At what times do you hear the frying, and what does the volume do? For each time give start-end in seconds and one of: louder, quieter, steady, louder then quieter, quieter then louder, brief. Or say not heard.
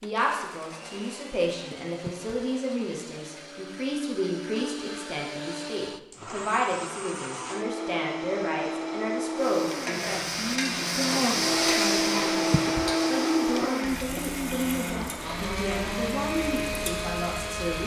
9.3-17.8 quieter.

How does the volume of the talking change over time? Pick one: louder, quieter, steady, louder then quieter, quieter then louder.
steady.